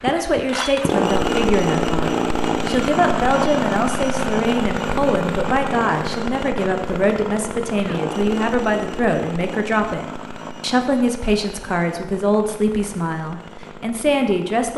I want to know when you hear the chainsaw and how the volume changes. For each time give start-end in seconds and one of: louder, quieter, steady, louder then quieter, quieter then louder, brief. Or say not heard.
0.0-14.7 quieter.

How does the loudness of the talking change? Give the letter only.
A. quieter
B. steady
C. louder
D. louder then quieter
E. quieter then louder
B.